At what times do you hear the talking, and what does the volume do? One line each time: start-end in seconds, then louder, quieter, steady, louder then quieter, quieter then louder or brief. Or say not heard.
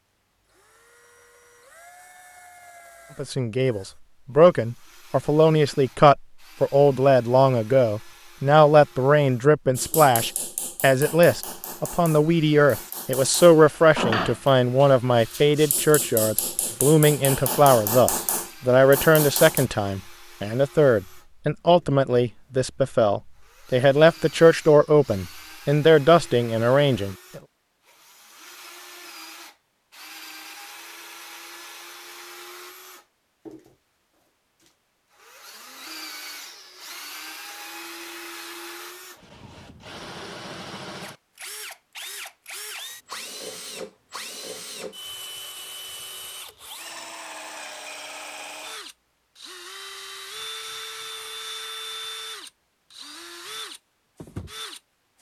3.1-27.4 steady.